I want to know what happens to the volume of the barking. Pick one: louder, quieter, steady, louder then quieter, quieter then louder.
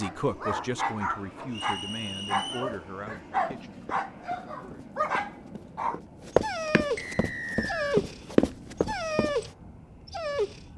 steady.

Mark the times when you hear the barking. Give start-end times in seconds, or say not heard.
0.0-10.6.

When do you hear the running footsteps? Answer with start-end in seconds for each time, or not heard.
2.6-9.3.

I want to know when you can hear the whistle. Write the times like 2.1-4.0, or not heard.
1.5-2.8, 7.0-8.0.